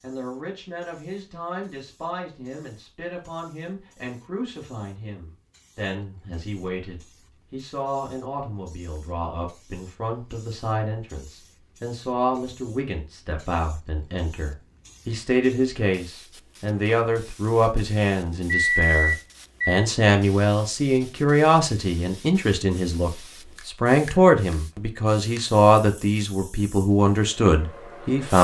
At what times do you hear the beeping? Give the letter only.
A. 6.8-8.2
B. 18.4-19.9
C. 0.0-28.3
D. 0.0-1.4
B.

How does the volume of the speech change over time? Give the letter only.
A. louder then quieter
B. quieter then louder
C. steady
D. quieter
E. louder
E.